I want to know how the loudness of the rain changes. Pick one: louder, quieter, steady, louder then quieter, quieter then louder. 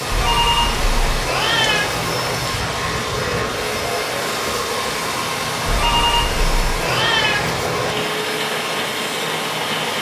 steady.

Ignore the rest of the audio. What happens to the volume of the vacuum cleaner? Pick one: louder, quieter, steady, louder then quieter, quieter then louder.
steady.